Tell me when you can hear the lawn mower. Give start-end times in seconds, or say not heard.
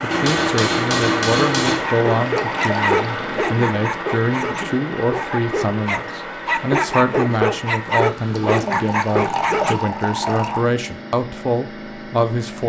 0.0-12.6.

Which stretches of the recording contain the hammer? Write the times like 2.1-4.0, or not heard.
0.1-1.9.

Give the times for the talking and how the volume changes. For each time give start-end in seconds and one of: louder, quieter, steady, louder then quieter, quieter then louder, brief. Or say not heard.
0.0-12.6 steady.